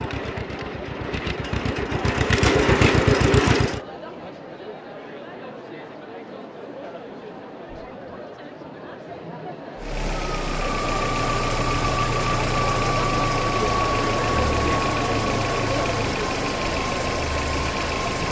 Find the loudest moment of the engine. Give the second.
3 s.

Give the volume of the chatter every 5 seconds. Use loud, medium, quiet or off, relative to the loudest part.
medium, medium, loud, loud.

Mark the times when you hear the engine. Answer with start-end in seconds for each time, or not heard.
0.0-3.8, 9.8-18.2.